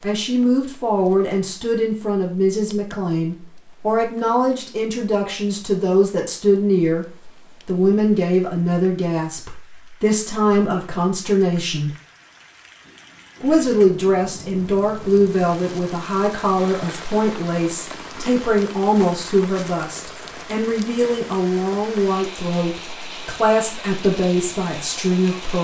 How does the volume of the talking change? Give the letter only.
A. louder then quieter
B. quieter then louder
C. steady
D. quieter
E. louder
C.